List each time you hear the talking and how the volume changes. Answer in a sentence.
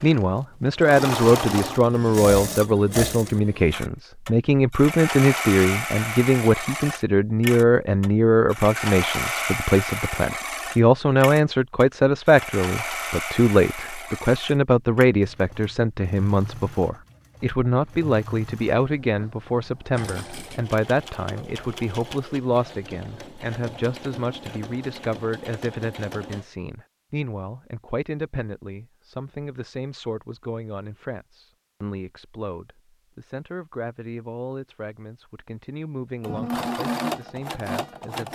The talking can be heard from 0.0 to 38.2 s, getting quieter.